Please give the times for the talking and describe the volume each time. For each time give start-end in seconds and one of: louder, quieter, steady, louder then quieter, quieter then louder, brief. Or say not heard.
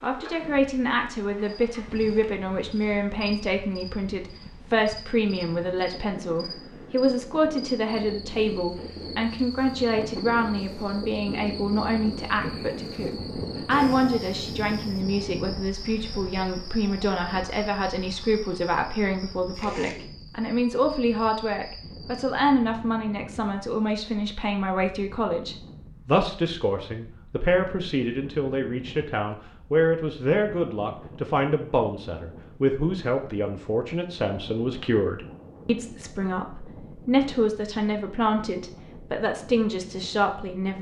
0.0-40.7 steady.